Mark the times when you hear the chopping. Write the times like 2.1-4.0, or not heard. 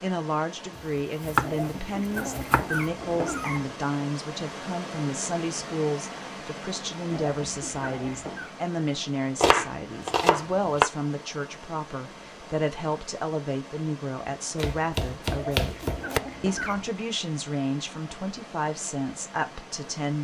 0.8-1.5, 2.1-2.9, 9.4-10.9, 14.6-16.2.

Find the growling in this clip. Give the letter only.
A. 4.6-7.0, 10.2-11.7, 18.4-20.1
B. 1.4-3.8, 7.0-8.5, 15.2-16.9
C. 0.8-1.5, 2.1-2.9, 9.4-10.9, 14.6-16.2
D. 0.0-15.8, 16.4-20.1
B.